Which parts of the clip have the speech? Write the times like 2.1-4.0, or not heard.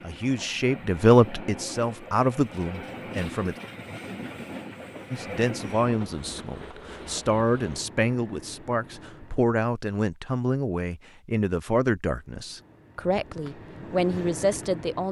0.0-3.5, 5.1-15.0.